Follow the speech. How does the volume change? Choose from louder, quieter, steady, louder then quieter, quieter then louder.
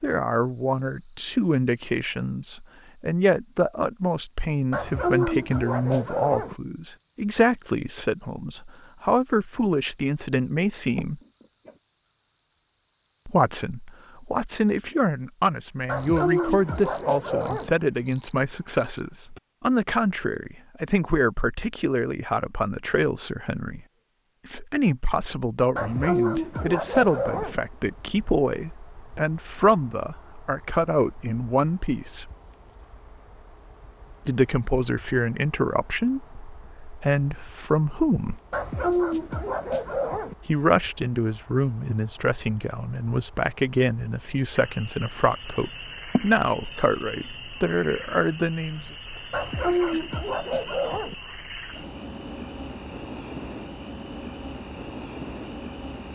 steady.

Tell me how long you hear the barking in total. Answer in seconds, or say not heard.
9 s.